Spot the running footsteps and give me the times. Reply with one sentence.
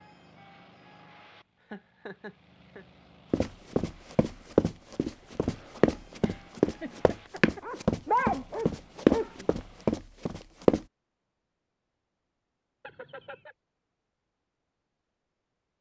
The running footsteps can be heard from 3.3 to 10.8 s.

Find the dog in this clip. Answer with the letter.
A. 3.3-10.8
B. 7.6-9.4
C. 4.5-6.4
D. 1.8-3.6
B.